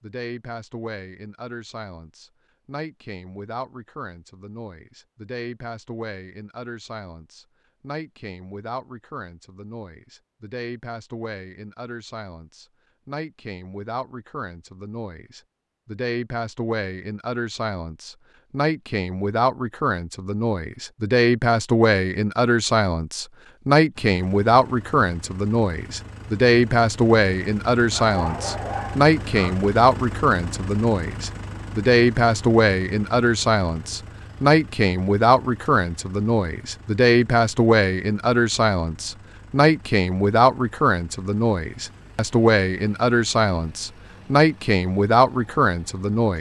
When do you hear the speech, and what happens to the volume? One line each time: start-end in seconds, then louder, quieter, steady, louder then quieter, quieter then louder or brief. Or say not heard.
0.0-46.3 louder.